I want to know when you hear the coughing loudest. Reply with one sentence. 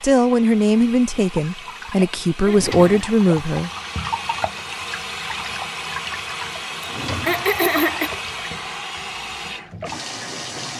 The volume of the coughing peaks at 8 seconds.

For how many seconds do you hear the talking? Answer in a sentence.
The talking can be heard for 4 seconds in total.